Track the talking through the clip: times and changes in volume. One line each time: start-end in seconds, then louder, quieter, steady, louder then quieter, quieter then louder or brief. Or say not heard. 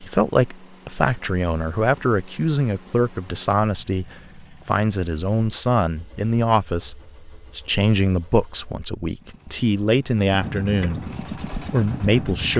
0.0-12.5 steady.